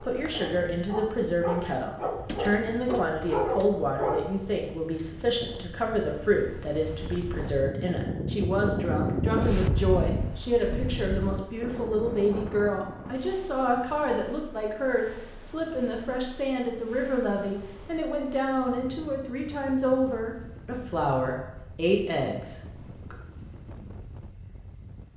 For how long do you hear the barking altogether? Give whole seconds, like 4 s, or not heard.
4 s.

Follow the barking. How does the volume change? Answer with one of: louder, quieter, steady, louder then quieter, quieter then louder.
louder.